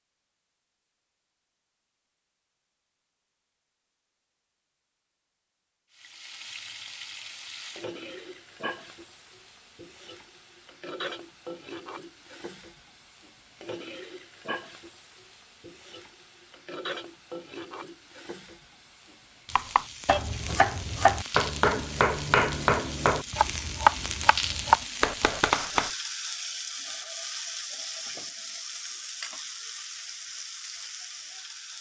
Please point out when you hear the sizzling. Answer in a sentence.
You can hear the sizzling from 5.9 to 31.7 s.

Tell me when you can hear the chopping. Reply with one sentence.
You can hear the chopping from 19.6 to 25.9 s.